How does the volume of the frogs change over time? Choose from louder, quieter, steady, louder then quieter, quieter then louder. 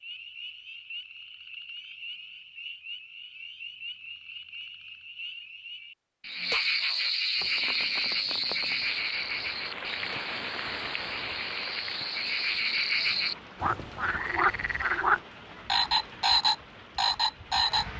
louder.